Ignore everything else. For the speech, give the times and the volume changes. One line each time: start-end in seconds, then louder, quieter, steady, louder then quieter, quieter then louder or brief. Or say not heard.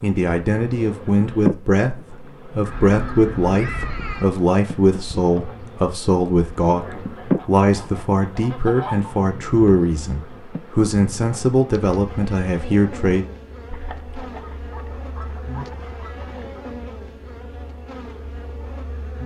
0.0-13.2 steady.